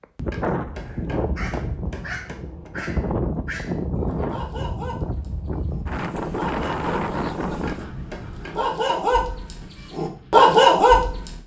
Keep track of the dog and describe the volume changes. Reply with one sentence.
The volume of the dog goes up.